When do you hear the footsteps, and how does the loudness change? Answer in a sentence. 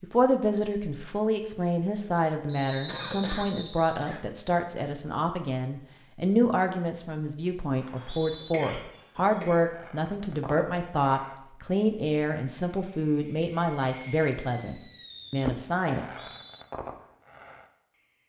The footsteps can't be heard in this clip.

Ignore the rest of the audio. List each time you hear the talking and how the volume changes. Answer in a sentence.
You can hear the talking from 0.0 to 16.2 s, at a steady volume.